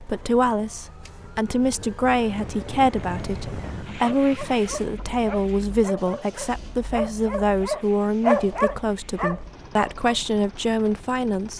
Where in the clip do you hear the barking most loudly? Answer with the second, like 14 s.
8 s.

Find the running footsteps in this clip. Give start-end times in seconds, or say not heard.
not heard.